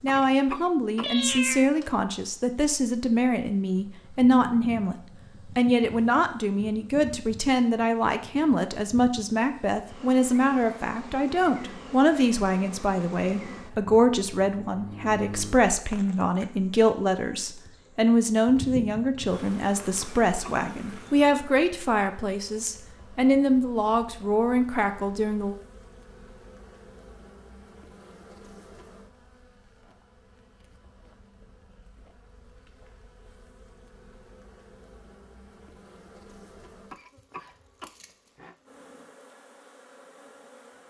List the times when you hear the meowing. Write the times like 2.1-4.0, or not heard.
1.0-1.7.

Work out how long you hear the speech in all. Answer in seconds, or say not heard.
25 s.